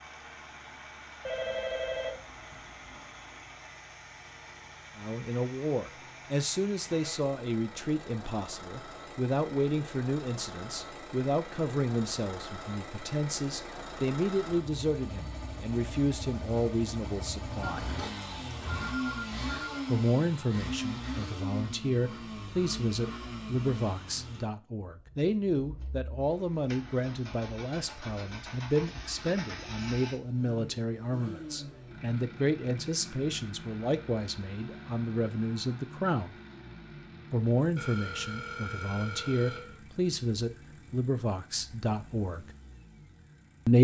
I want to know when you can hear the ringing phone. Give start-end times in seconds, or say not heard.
1.2-3.0, 17.8-19.9, 37.8-39.8.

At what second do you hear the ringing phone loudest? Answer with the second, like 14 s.
2 s.